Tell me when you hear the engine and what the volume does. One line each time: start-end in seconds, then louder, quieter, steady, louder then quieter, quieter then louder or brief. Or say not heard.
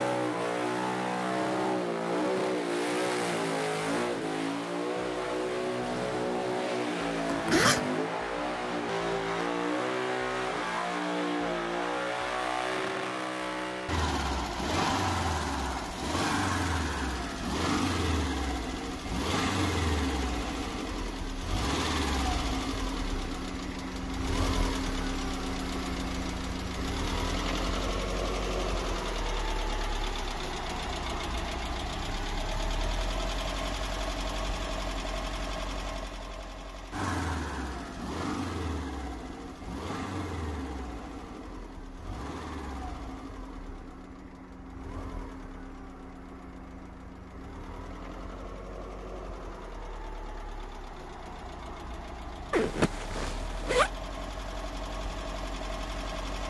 0.0-56.4 quieter.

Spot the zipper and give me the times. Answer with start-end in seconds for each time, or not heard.
7.2-7.9, 52.5-53.9.